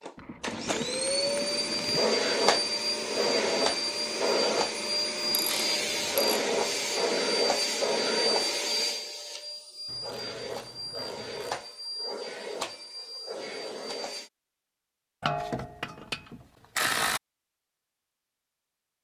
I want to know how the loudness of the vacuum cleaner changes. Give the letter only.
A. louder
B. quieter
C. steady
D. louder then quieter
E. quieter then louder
B.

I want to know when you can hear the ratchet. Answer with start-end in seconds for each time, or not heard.
0.1-2.1, 5.2-6.8, 9.8-11.6, 15.2-17.2.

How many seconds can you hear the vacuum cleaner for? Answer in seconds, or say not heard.
14 s.